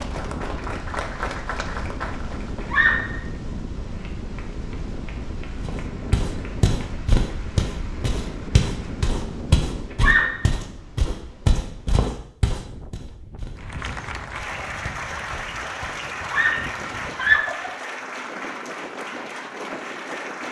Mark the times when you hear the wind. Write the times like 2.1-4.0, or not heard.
0.0-20.4.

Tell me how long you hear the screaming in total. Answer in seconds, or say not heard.
3 s.